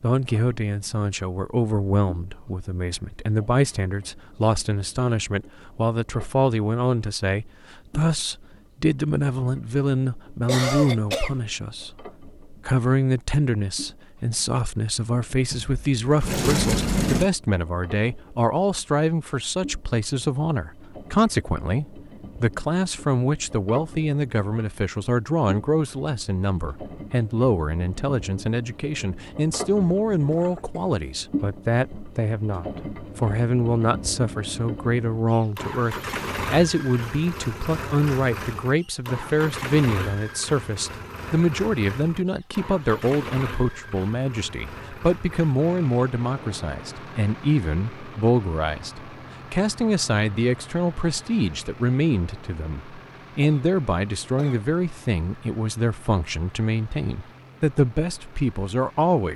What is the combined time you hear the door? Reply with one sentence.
You can hear the door for 2 seconds altogether.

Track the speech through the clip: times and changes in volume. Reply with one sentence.
You can hear the speech from 0.0 to 59.3 s, at a steady volume.